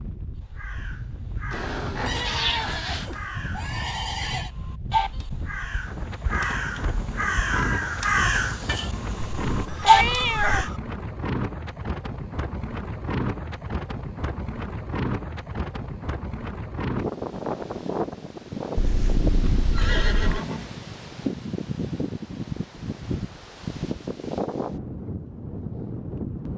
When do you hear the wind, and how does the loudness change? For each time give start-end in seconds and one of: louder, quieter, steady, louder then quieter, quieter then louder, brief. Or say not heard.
0.0-26.5 louder.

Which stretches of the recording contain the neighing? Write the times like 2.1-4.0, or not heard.
2.0-4.5, 9.5-10.8, 18.8-20.7.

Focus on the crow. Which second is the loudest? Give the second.
10 s.